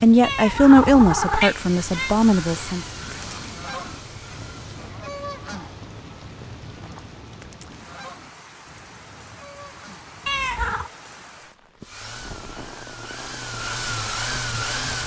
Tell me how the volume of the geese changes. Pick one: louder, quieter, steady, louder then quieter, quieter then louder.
quieter.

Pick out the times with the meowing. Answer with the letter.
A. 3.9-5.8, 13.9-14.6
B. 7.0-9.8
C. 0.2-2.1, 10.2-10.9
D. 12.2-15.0
C.